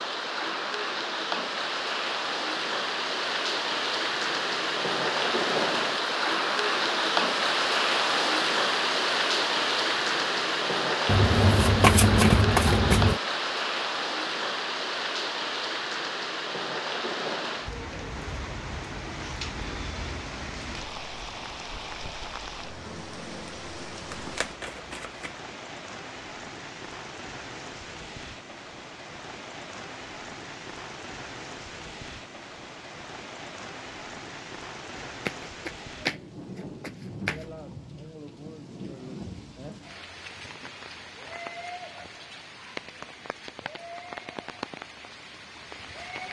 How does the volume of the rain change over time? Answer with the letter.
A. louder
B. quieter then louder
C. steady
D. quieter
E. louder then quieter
D.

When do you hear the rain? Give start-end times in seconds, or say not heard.
0.0-46.2.